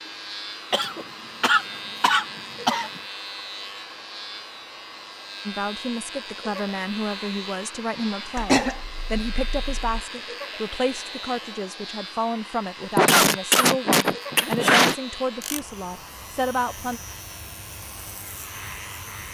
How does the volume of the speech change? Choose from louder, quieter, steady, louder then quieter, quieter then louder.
steady.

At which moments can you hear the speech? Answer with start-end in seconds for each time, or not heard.
5.5-17.0.